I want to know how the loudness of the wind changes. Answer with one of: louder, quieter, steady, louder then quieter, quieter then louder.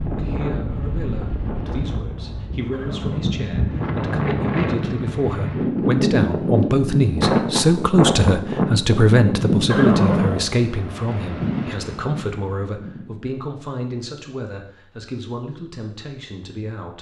louder then quieter.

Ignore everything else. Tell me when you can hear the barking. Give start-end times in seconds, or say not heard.
not heard.